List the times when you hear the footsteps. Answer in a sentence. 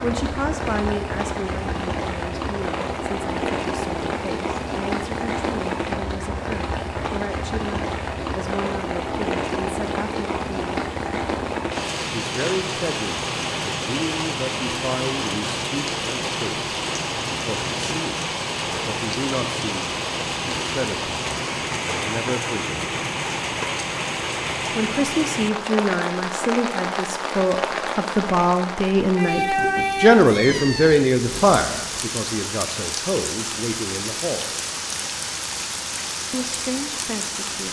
You can't hear the footsteps here.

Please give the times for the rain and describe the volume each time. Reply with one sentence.
The rain can be heard from 0.0 to 37.6 s, at a steady volume.